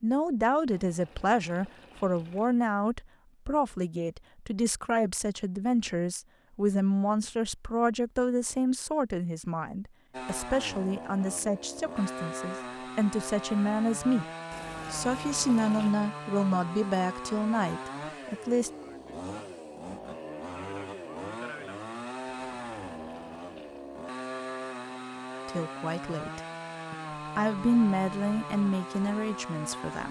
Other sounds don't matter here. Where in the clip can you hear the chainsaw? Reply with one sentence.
You can hear the chainsaw from 10.1 to 30.0 s.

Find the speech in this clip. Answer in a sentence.
You can hear the speech from 0.0 to 14.2 s, from 14.9 to 18.7 s and from 25.4 to 30.0 s.